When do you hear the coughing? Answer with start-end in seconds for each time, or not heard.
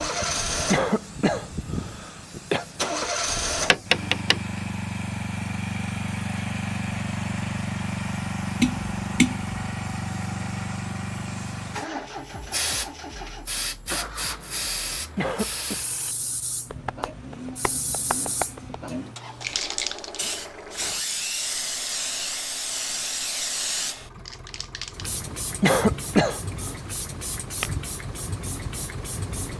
0.7-2.6, 15.2-15.8, 25.6-26.4.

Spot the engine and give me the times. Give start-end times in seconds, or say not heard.
0.0-29.5.